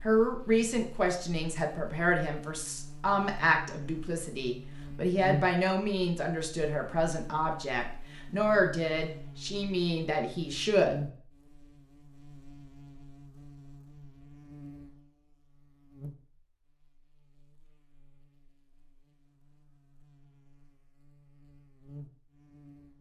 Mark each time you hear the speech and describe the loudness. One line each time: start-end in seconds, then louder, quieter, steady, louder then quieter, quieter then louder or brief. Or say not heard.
0.0-11.0 steady.